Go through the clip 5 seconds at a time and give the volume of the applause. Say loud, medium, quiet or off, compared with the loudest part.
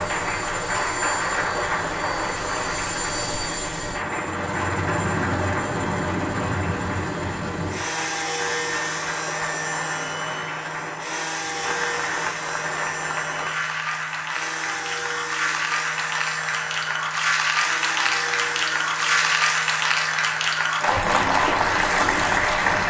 medium, medium, medium, loud, loud.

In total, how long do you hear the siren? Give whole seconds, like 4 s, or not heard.
not heard.